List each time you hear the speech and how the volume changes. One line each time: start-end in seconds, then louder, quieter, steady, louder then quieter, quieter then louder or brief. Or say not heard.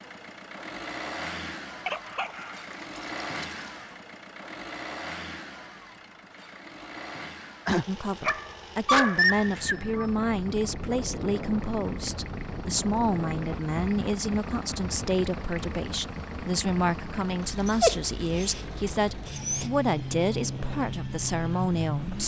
7.8-22.2 steady.